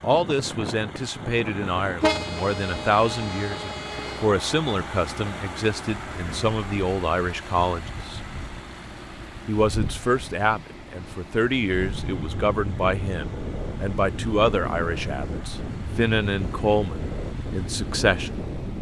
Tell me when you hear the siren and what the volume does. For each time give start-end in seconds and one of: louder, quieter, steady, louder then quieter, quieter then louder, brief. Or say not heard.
not heard.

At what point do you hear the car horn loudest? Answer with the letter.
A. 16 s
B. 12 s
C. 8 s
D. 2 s
D.